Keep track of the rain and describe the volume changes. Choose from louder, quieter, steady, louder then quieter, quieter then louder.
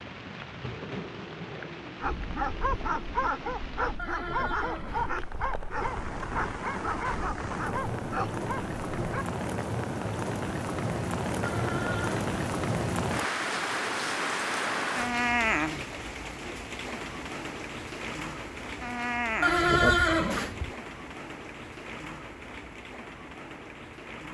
louder then quieter.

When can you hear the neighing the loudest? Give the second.
20 s.